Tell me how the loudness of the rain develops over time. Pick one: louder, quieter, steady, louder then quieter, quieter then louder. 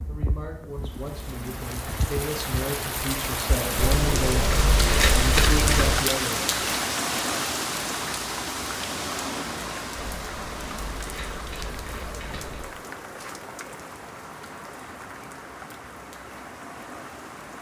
louder then quieter.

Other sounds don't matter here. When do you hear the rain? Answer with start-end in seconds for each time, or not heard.
0.0-17.5.